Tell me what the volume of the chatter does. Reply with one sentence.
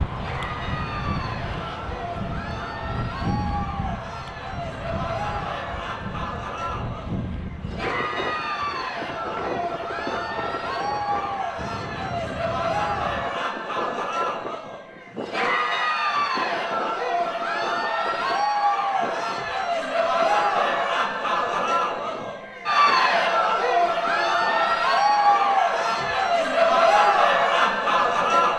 The volume of the chatter goes up.